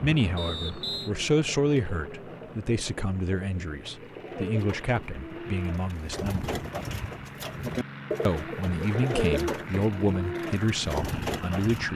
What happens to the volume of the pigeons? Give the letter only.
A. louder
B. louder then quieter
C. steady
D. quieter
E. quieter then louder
A.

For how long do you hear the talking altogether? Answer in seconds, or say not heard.
10 s.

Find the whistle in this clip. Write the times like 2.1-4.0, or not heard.
0.3-1.1.